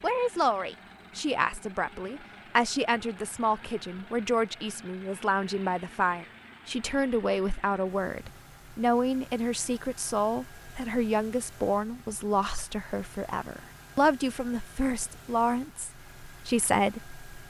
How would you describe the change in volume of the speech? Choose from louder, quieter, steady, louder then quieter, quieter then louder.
steady.